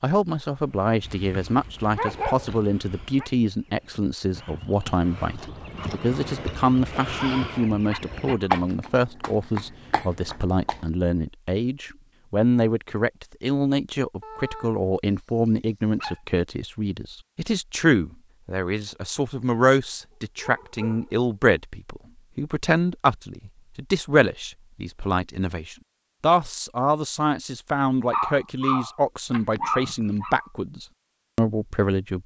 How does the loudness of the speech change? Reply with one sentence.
The volume of the speech stays about the same.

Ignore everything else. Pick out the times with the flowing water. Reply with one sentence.
The flowing water can't be heard in this clip.